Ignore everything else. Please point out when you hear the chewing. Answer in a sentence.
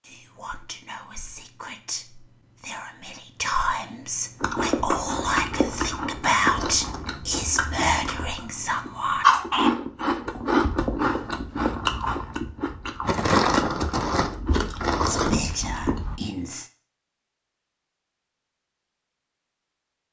You can hear the chewing from 4.4 to 16.1 s.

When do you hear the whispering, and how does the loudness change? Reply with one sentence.
You can hear the whispering from 0.0 to 9.8 s, getting louder; and briefly from 15.1 to 16.7 s.